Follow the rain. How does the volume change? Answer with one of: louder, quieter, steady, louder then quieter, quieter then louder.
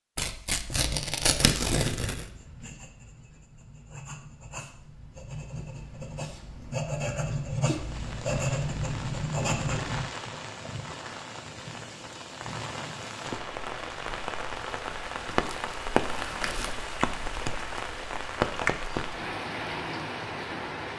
louder.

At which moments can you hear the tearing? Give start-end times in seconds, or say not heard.
0.1-2.3, 15.2-16.8.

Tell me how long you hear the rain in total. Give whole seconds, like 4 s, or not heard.
13 s.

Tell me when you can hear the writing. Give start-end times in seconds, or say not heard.
0.7-10.1.